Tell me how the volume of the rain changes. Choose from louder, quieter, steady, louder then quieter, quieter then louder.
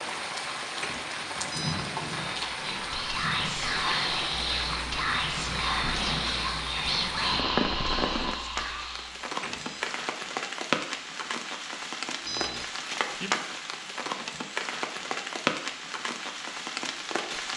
steady.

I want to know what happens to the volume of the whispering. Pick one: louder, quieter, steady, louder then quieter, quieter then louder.
steady.